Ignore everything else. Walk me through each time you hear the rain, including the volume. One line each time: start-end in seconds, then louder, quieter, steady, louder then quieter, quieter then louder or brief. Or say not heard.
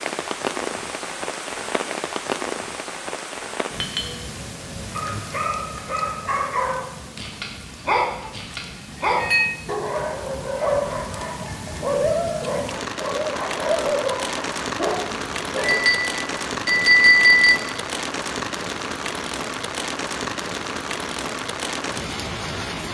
0.0-22.8 quieter then louder.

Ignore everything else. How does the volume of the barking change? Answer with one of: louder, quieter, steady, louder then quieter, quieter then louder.
steady.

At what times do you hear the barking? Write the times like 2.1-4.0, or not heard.
5.0-15.8.